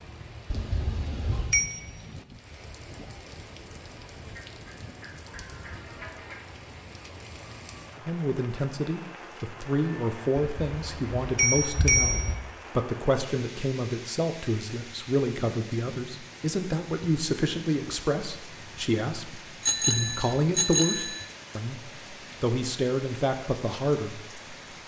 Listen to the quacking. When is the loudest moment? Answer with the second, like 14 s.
6 s.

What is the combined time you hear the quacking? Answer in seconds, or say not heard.
2 s.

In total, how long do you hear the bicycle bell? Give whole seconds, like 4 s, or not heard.
5 s.